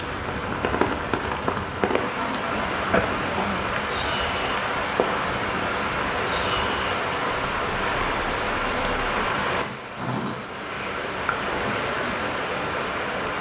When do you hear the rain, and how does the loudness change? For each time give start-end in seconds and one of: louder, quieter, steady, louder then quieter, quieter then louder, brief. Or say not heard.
0.0-13.3 steady.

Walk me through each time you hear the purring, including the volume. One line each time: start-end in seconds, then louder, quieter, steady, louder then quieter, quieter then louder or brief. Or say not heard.
not heard.